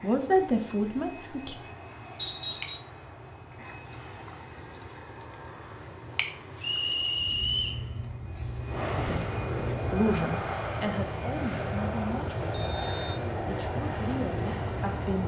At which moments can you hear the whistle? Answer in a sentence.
You can hear the whistle from 2.1 to 2.9 s, from 6.6 to 7.8 s and from 12.5 to 13.2 s.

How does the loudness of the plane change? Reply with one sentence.
The loudness of the plane goes up.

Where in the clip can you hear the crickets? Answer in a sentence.
The crickets can be heard from 0.0 to 15.2 s.